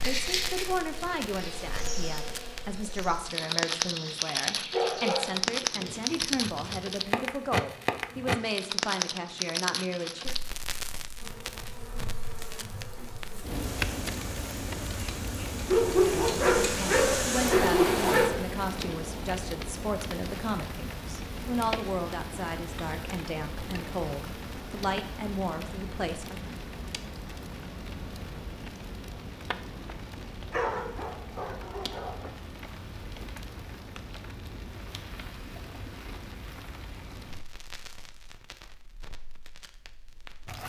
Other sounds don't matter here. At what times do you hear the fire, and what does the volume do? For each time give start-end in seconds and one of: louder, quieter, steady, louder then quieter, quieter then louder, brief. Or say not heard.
0.0-40.6 quieter.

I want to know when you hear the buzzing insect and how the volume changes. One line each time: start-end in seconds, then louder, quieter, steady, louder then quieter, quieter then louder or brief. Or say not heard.
0.0-8.3 quieter
11.2-18.3 louder.